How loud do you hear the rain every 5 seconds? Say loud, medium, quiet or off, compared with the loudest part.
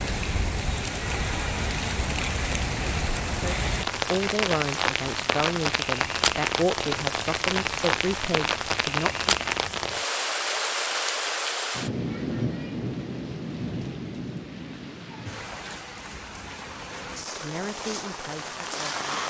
loud, loud, loud, medium.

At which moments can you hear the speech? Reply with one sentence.
You can hear the speech from 3.2 to 9.3 s and from 17.2 to 19.2 s.